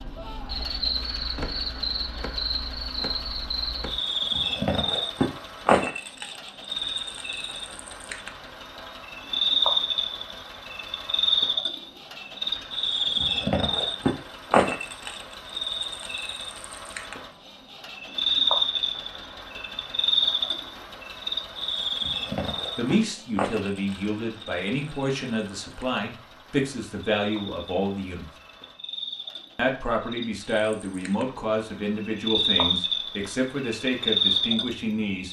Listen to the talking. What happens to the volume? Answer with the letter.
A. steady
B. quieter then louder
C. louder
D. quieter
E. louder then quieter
A.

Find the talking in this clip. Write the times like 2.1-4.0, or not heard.
22.8-28.3, 29.6-35.2.